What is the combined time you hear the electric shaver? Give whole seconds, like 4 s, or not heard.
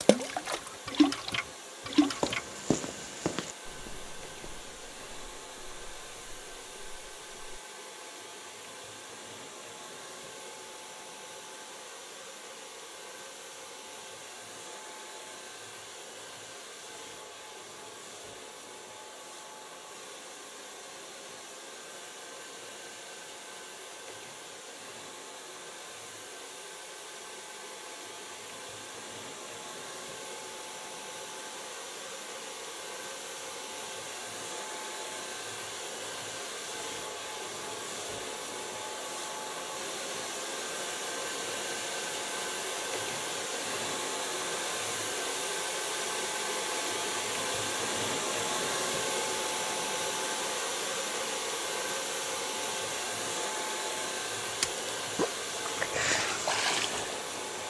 not heard.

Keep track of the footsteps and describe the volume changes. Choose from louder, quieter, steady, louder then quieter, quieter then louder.
quieter.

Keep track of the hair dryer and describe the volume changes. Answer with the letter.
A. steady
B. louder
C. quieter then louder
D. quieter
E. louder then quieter
B.